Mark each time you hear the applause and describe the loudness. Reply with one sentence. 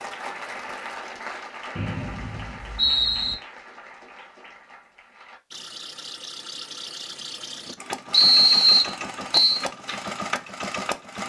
The applause can be heard from 0.0 to 5.4 s, getting quieter.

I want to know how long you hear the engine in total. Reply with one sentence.
The engine can be heard for 6 seconds in total.